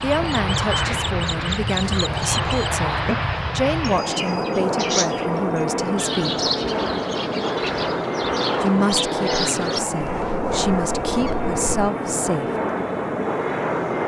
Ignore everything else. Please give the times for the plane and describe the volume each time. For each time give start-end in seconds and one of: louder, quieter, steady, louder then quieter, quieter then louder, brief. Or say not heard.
0.0-14.0 steady.